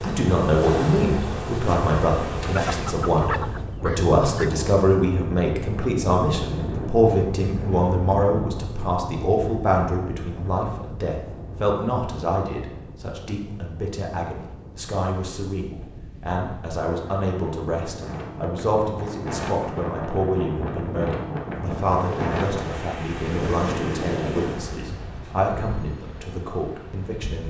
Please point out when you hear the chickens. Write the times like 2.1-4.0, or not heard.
2.5-4.5.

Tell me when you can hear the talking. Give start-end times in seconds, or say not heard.
0.0-27.4.